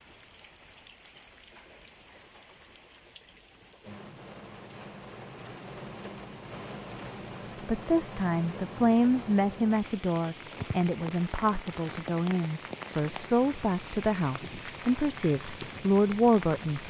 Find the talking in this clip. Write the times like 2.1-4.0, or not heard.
7.7-16.8.